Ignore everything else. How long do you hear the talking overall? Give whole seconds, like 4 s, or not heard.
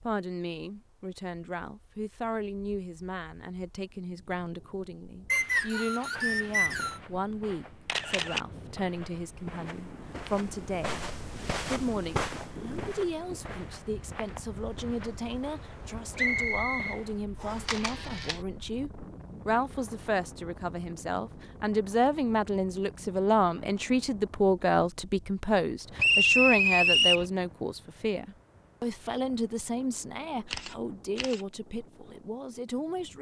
33 s.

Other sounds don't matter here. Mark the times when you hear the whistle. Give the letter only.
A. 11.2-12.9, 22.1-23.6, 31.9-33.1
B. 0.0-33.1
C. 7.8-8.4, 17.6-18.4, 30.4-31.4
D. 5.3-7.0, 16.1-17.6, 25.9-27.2
D.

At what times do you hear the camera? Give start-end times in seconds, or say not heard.
7.8-8.4, 17.6-18.4, 30.4-31.4.